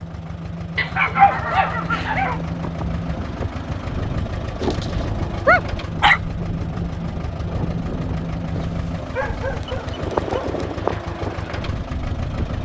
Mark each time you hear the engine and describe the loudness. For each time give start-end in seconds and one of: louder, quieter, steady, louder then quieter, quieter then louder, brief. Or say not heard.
0.0-12.6 steady.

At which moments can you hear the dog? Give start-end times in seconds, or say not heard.
0.8-2.4, 4.6-6.2, 8.6-10.6.